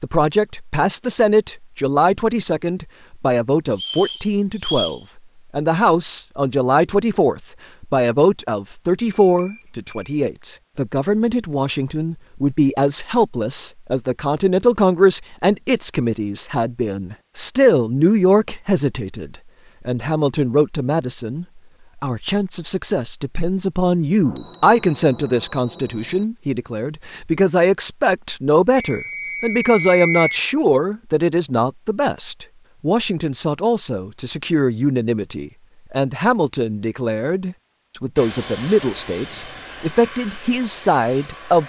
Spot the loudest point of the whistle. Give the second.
30 s.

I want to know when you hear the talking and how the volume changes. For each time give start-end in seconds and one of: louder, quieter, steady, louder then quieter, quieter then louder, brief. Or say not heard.
0.0-41.6 steady.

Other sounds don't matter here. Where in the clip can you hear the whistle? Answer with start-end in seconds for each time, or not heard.
3.8-5.0, 28.8-30.4.